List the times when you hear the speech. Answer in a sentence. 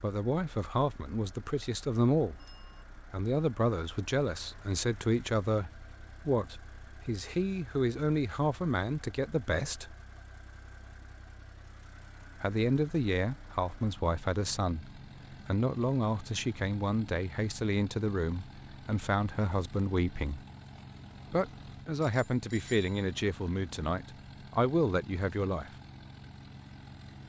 The speech can be heard from 0.0 to 2.4 s, from 3.0 to 9.9 s, from 12.4 to 20.4 s and from 21.3 to 25.7 s.